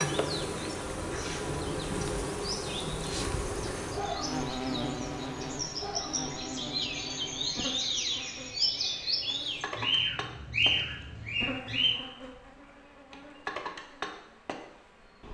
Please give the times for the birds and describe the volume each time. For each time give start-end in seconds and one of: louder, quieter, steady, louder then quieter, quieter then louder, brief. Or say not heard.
0.1-11.9 louder.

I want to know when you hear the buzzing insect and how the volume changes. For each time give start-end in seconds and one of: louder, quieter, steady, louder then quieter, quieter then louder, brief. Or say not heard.
0.0-15.2 quieter.